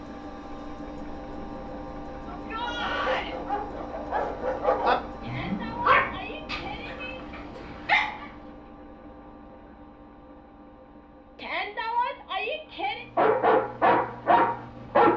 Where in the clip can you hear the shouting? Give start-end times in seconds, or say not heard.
2.2-3.4, 5.2-7.2, 11.3-13.1.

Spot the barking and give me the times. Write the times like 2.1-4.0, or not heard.
2.6-8.3, 13.2-15.1.